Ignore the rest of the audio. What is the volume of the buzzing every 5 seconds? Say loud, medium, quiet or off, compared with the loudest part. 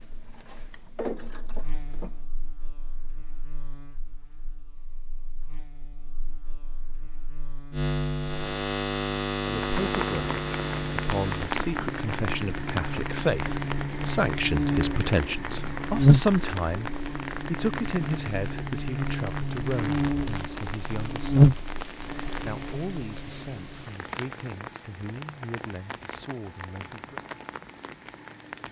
quiet, medium, medium, loud, loud, off.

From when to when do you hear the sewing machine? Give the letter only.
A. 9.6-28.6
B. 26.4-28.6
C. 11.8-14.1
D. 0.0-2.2
D.